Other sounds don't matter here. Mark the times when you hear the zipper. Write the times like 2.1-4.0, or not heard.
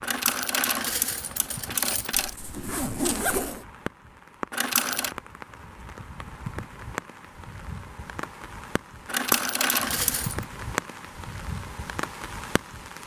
2.1-3.6.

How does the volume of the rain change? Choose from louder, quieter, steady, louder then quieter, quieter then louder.
louder.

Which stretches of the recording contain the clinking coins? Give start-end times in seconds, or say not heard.
0.0-2.4, 4.5-5.2, 9.1-10.4.